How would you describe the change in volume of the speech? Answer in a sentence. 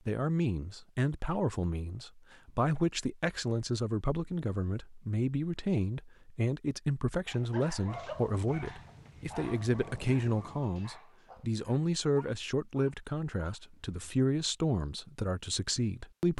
The volume of the speech stays about the same.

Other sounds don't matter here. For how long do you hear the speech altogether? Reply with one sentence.
The speech can be heard for 16 seconds in total.